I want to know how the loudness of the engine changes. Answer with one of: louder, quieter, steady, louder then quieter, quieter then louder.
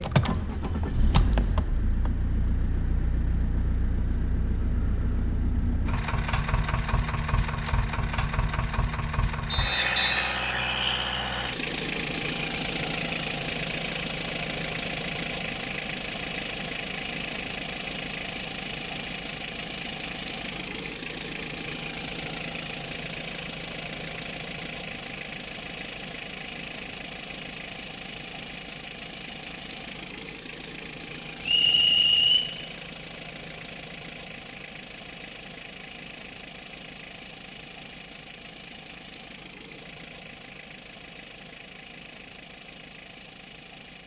quieter.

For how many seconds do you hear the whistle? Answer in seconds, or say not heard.
2 s.